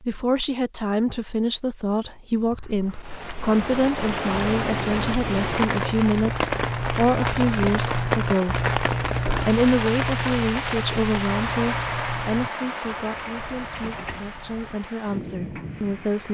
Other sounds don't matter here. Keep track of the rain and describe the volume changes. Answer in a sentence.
The loudness of the rain goes down.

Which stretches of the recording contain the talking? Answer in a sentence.
The talking can be heard from 0.0 to 8.7 s and from 9.4 to 16.3 s.